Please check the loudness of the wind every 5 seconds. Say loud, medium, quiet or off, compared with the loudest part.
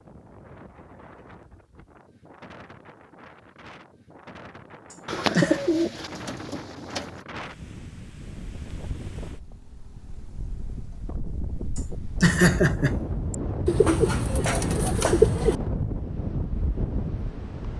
quiet, medium, loud, loud.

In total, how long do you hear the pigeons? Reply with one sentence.
The pigeons can be heard for 4 seconds in total.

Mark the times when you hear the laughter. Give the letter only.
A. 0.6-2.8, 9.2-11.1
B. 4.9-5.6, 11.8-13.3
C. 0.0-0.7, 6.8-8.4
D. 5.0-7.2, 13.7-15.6
B.